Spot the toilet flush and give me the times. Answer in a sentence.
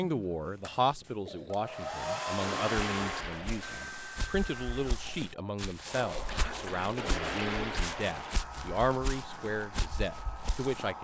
The toilet flush can be heard from 2.4 to 3.9 s and from 7.0 to 8.4 s.